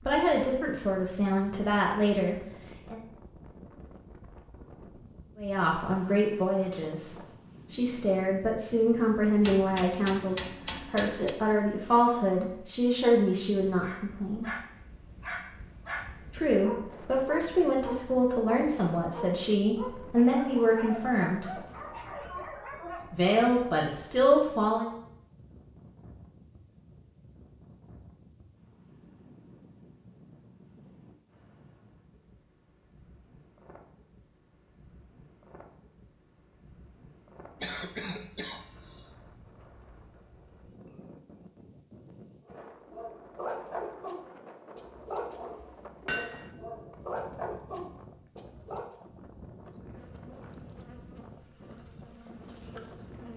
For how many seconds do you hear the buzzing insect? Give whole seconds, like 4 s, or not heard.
3 s.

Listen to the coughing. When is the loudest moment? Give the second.
38 s.